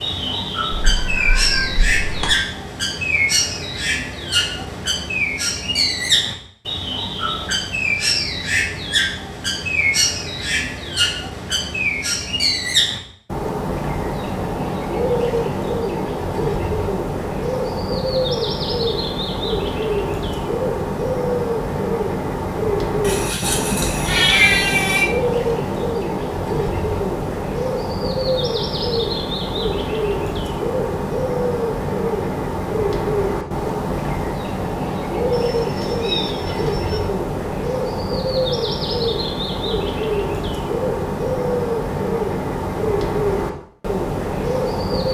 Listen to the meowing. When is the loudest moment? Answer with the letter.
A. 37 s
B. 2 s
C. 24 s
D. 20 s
C.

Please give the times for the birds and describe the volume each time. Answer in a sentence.
The birds can be heard from 0.0 to 45.0 s, at a steady volume.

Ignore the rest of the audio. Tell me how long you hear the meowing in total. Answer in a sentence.
The meowing can be heard for 5 seconds in total.